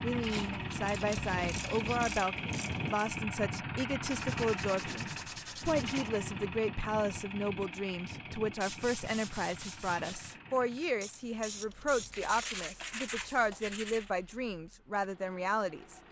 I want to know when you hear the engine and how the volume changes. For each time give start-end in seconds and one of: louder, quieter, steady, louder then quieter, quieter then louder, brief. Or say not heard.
0.0-16.0 quieter.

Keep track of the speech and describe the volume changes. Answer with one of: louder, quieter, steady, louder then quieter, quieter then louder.
steady.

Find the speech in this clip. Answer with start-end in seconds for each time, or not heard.
0.0-16.0.